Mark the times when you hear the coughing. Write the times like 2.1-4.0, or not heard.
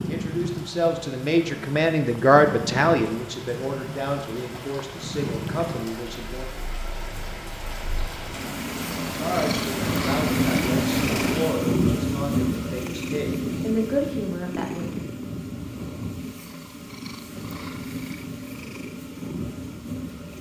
not heard.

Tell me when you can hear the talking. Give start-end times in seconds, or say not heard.
0.0-6.5, 9.2-15.0.